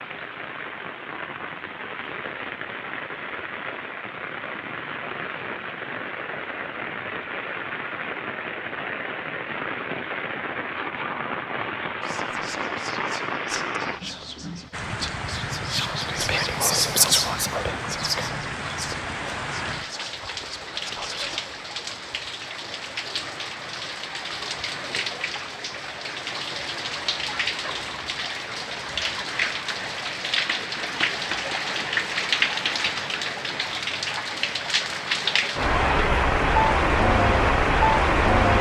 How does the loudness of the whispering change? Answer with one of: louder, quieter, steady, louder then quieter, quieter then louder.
louder then quieter.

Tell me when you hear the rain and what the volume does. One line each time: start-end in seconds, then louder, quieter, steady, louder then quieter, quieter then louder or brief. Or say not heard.
0.0-38.5 louder.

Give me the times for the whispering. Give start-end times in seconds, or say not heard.
12.0-21.4.